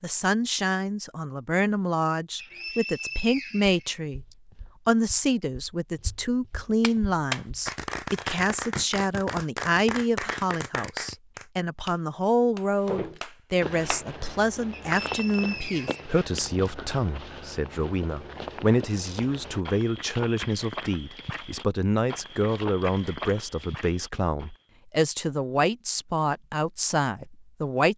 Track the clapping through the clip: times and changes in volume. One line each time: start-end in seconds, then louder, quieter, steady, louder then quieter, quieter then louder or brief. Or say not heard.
6.8-14.1 quieter.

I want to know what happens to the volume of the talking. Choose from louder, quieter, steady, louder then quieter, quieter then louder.
steady.